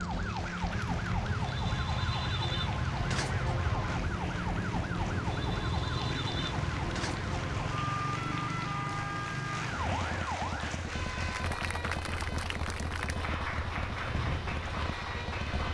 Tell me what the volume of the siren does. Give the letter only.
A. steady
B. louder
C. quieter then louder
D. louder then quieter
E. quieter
E.